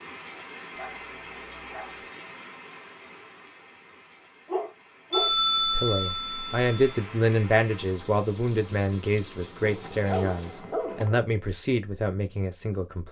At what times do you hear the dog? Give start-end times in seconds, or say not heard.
0.8-2.0, 4.5-5.3, 9.6-11.2.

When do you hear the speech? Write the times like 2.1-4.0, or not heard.
5.7-13.0.